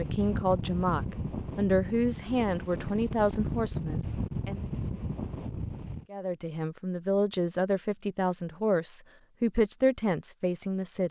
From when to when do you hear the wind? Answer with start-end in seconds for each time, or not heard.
0.0-6.0.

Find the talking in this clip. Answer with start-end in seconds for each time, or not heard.
0.0-4.7, 6.1-11.0.